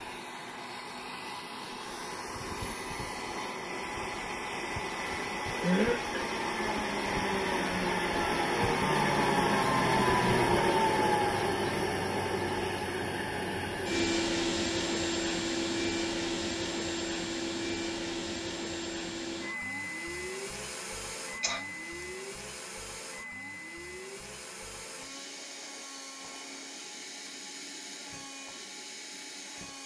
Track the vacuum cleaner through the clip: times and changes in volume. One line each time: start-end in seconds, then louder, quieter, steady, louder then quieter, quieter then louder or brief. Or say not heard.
0.0-29.8 louder then quieter.